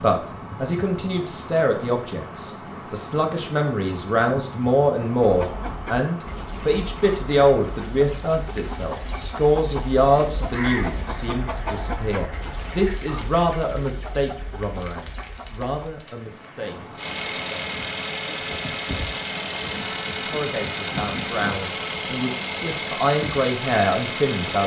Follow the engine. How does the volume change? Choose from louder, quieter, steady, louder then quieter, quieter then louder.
steady.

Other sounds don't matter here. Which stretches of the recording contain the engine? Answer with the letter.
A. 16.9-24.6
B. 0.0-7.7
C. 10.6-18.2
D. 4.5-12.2
A.